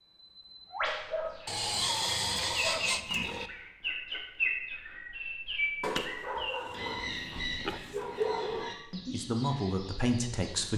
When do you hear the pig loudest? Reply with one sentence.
The loudest moment of the pig is at 2 seconds.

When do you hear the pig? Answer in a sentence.
The pig can be heard from 1.4 to 3.5 s and from 6.3 to 7.8 s.